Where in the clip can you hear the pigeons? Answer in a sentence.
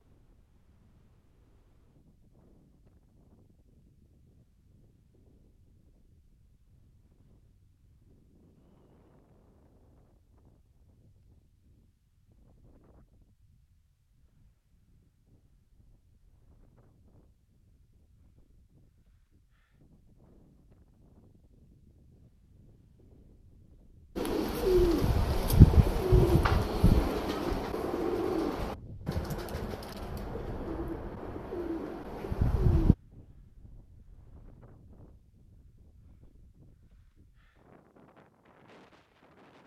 The pigeons can be heard from 24.1 to 33.0 s.